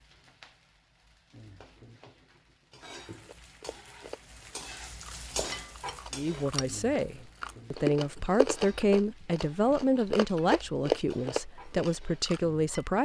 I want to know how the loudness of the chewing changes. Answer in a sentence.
The volume of the chewing goes up.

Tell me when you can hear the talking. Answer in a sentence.
The talking can be heard from 6.1 to 12.9 s.